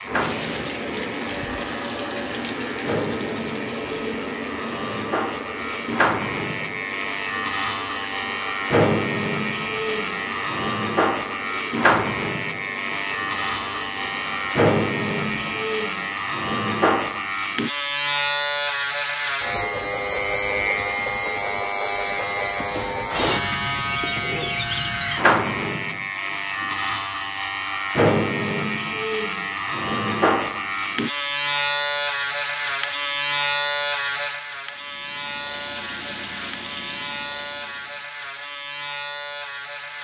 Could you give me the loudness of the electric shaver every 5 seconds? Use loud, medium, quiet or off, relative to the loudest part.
medium, loud, loud, loud, loud, loud, loud, medium.